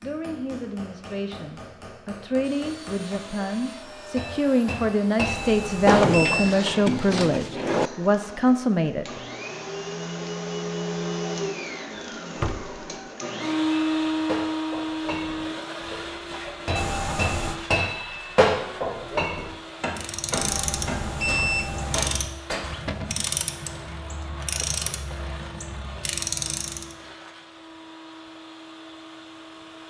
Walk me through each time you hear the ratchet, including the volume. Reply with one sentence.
You can hear the ratchet from 19.9 to 26.9 s, at a steady volume.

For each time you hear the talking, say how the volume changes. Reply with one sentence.
You can hear the talking from 0.0 to 9.2 s, getting louder.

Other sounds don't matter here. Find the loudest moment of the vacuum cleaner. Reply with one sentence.
The loudest moment of the vacuum cleaner is at 14 seconds.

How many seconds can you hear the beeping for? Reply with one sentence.
The beeping can be heard for 4 seconds in total.